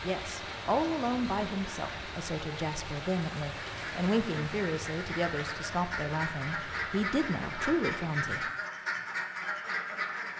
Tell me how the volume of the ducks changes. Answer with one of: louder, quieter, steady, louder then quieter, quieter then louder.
louder.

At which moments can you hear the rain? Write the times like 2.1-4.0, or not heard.
0.0-8.5.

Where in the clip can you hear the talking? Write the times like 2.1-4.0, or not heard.
0.0-8.5.